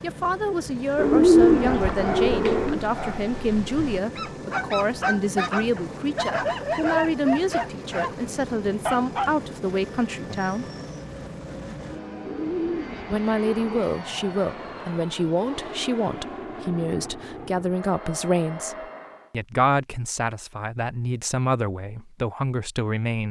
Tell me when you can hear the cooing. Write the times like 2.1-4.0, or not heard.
0.9-2.8, 12.2-13.8.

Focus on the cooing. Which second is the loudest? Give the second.
1 s.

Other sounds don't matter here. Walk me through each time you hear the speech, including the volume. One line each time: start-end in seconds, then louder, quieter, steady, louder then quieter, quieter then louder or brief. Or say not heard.
0.0-10.7 steady
13.1-23.2 steady.